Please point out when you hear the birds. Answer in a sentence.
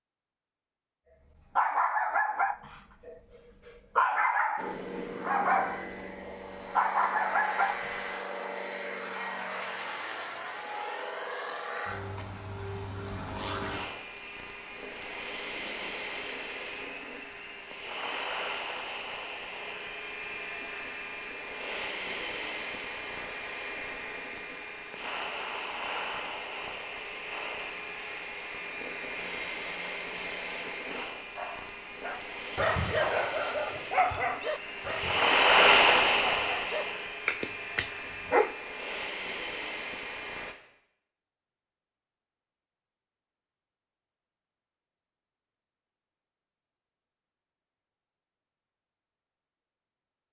You can't hear the birds here.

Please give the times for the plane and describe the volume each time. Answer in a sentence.
The plane can be heard from 4.5 to 40.5 s, getting louder.